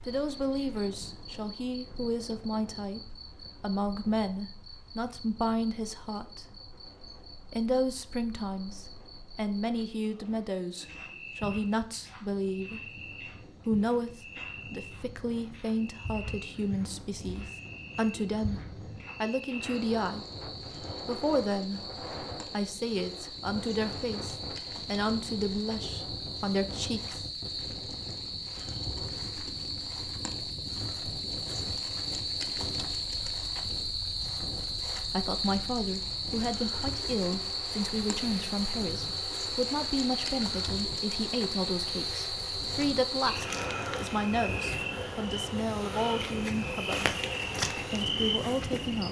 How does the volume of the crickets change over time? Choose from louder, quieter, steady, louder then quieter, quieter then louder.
louder.